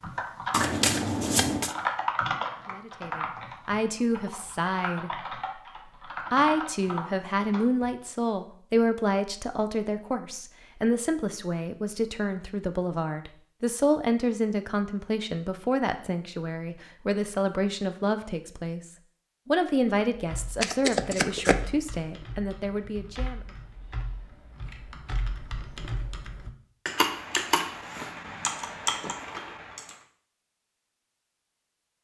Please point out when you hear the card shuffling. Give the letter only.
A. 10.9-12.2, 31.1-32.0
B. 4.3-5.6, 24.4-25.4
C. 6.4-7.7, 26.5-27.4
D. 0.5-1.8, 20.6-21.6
D.